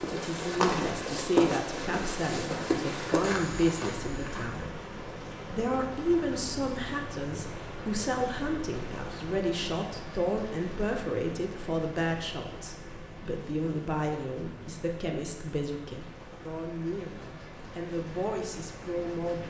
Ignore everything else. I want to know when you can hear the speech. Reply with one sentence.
The speech can be heard from 0.0 to 4.8 s and from 5.5 to 19.4 s.